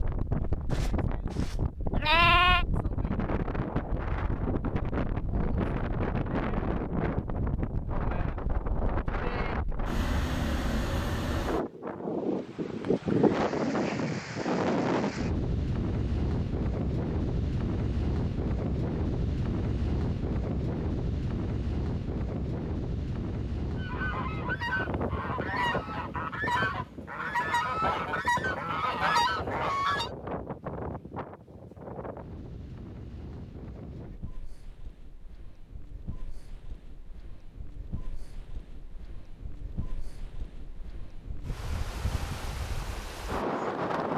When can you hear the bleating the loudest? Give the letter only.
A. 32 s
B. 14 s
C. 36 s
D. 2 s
D.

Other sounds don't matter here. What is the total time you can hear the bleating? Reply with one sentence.
The bleating can be heard for 2 seconds in total.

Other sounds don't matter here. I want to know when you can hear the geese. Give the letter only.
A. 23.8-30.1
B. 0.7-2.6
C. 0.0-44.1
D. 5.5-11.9
A.